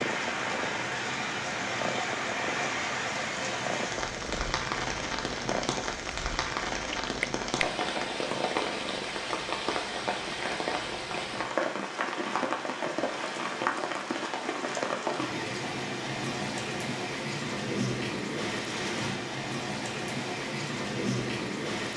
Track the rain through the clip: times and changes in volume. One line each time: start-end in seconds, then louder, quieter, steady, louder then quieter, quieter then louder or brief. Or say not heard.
0.0-21.9 steady.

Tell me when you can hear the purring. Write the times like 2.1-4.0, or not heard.
0.0-9.2.